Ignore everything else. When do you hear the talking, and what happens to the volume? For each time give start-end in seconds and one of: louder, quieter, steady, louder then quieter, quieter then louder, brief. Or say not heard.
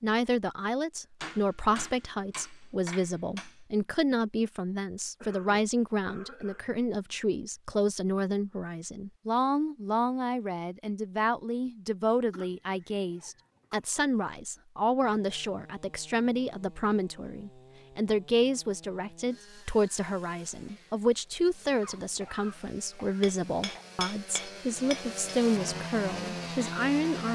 0.0-27.3 steady.